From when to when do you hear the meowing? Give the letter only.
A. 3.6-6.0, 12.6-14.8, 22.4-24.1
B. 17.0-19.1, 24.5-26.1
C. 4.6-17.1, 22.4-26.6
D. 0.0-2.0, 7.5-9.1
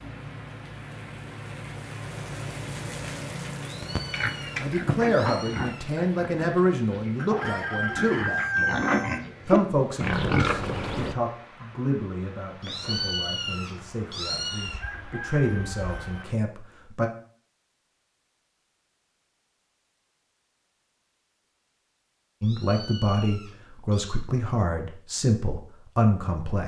A.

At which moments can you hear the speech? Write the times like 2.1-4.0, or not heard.
4.6-17.1, 22.4-26.6.